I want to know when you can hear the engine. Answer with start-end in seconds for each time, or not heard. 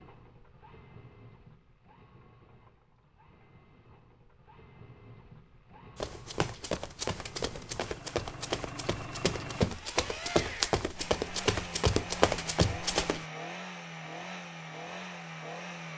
0.0-15.9.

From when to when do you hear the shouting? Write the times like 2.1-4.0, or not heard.
not heard.